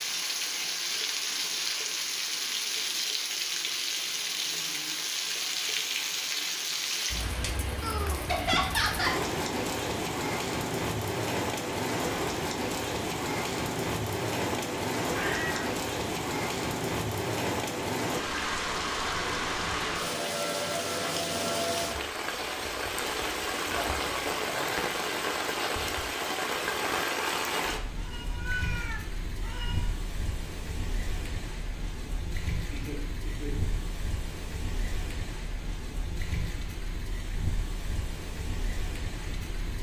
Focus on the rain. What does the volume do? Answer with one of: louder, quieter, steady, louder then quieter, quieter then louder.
quieter.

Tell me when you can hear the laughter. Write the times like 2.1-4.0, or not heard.
8.2-9.2, 32.7-34.0.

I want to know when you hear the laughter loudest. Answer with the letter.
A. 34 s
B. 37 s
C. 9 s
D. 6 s
C.